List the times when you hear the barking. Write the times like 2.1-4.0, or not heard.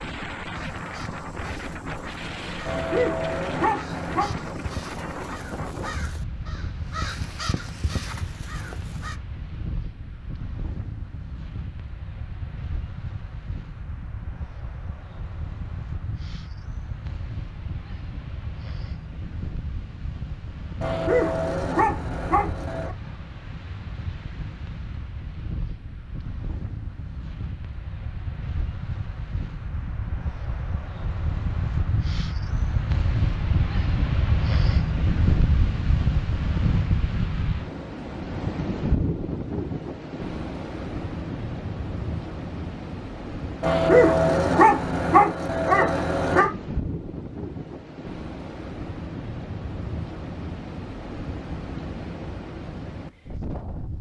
2.6-4.3, 20.8-22.9, 43.6-46.5.